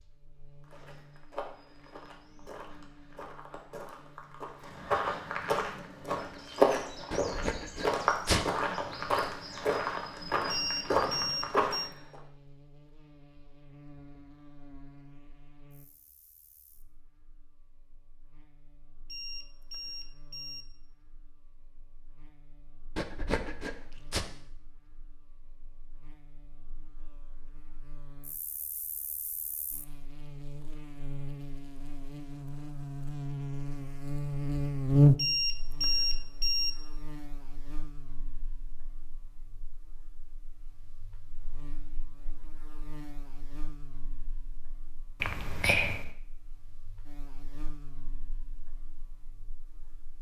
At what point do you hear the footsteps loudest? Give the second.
7 s.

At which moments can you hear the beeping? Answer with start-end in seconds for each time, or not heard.
10.4-11.9, 19.1-20.6, 35.1-36.7.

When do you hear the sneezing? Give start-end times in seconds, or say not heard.
7.1-8.4, 22.9-24.2, 45.2-46.1.